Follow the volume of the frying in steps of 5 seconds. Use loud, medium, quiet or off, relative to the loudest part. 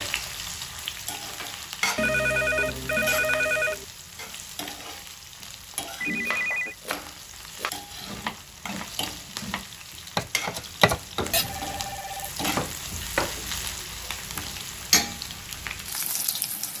loud, medium, loud, loud.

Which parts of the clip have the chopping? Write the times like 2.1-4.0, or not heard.
6.2-13.4.